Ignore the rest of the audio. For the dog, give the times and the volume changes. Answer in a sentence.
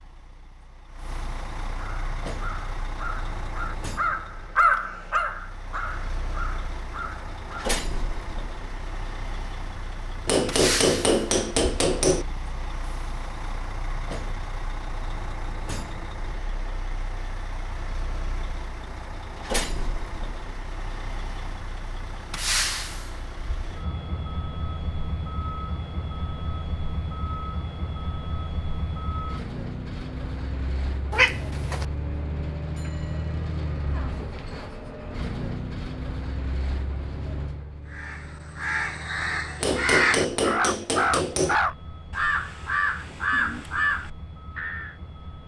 You can't hear the dog here.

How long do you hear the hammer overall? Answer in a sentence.
The hammer can be heard for 4 seconds in total.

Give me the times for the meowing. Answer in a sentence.
The meowing can be heard from 31.1 to 31.9 s.